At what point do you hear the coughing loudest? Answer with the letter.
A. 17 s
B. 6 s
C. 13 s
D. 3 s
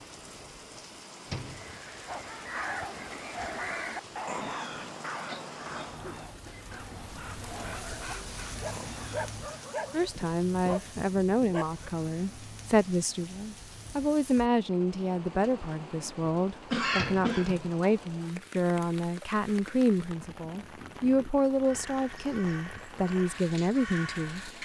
A.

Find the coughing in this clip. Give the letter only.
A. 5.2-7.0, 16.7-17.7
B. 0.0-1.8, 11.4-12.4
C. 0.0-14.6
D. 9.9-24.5
A.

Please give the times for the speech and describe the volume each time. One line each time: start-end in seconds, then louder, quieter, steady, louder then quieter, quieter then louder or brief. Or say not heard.
9.9-24.5 steady.